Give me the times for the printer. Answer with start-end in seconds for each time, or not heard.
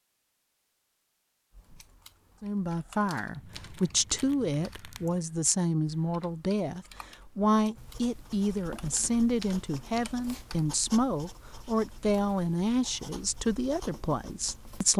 not heard.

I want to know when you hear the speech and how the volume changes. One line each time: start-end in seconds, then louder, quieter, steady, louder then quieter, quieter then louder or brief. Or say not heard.
2.4-14.9 steady.